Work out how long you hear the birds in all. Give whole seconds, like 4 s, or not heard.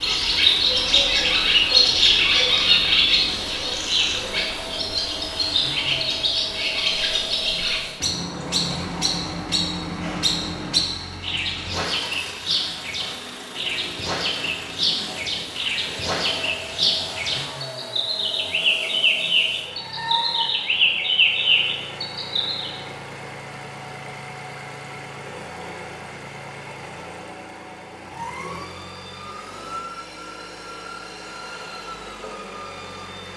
23 s.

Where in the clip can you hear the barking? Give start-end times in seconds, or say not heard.
not heard.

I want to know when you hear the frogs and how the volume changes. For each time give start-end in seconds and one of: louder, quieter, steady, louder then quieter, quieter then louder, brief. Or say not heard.
not heard.